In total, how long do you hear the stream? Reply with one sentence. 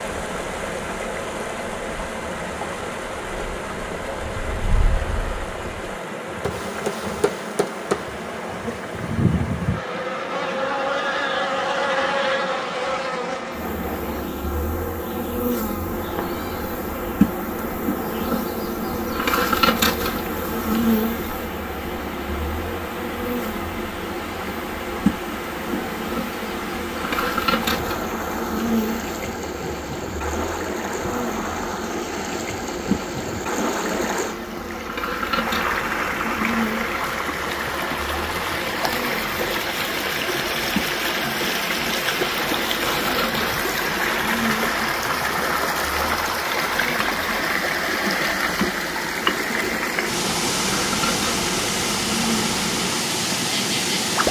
The stream can be heard for 54 seconds in total.